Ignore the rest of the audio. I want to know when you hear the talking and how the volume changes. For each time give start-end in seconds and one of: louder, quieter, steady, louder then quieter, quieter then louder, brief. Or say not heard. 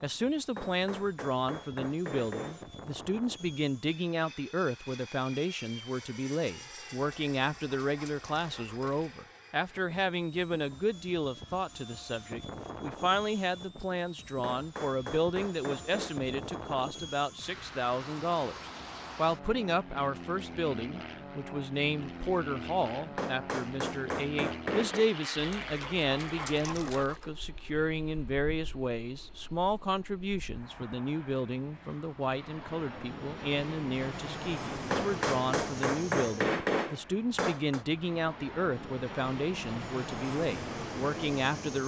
0.0-41.8 steady.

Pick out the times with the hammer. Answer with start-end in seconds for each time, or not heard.
0.6-2.6, 14.4-16.1, 23.1-25.1, 34.9-37.9.